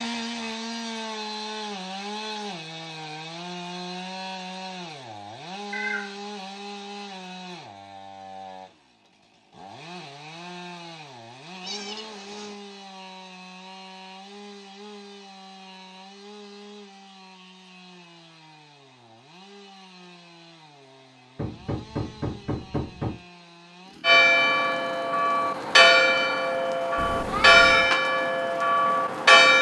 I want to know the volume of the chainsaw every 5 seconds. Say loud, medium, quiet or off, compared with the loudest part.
loud, medium, medium, quiet, quiet, quiet.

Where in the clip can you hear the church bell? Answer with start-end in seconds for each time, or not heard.
24.0-29.5.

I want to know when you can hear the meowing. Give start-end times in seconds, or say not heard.
5.7-6.2, 11.6-12.6, 26.9-27.9.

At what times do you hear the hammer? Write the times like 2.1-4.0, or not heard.
21.4-23.2.